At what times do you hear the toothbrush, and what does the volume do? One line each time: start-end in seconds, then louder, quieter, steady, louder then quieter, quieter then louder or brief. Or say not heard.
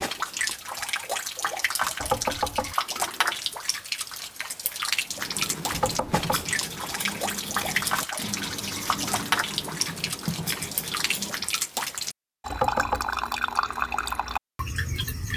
5.1-11.5 steady.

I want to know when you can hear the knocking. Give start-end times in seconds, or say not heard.
2.0-2.8, 5.7-6.5, 12.5-13.1.